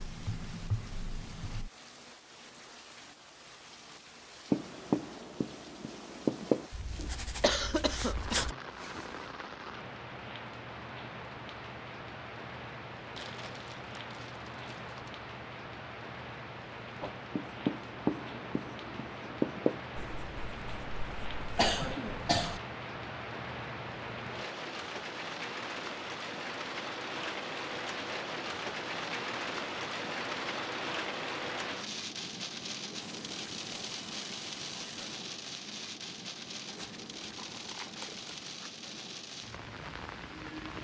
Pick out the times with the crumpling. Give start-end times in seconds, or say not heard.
13.2-15.2, 36.6-38.7.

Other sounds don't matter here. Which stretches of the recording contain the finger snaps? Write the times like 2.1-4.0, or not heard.
not heard.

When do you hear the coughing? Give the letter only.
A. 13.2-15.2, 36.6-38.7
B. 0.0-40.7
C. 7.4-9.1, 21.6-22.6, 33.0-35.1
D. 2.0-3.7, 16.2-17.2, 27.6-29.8
C.